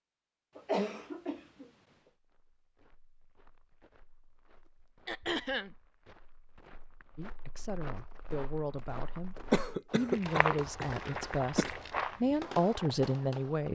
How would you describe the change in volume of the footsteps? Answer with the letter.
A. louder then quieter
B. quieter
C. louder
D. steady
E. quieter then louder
C.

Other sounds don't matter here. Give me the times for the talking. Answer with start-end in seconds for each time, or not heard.
7.2-13.7.